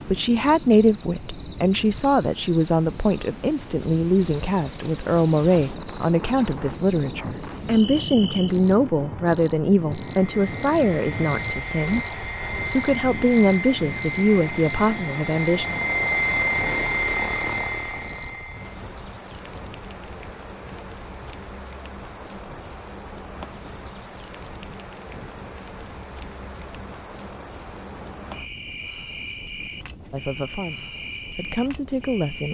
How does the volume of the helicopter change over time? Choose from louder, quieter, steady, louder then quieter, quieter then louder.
louder.